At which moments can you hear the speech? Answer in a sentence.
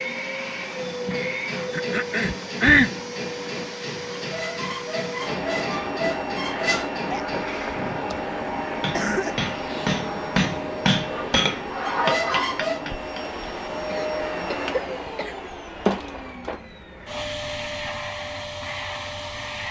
The speech can't be heard in this clip.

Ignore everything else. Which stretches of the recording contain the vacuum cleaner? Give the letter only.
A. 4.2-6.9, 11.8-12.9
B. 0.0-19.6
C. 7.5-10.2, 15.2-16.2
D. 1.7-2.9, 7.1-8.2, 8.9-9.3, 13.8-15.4
B.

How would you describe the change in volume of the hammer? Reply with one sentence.
The loudness of the hammer goes up.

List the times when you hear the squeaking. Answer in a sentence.
The squeaking can be heard from 4.2 to 6.9 s and from 11.8 to 12.9 s.